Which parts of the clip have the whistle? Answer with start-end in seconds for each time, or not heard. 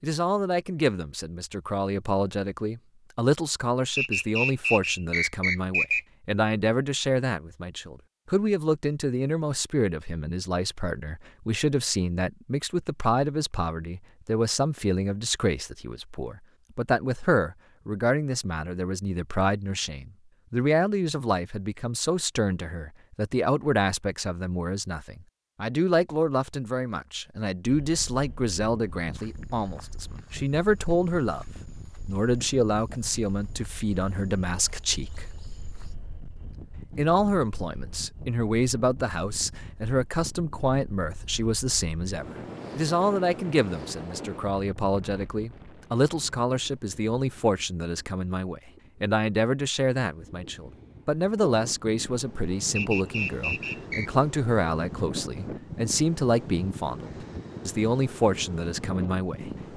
4.0-6.0, 52.8-54.1.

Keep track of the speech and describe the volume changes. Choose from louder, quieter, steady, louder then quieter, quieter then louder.
steady.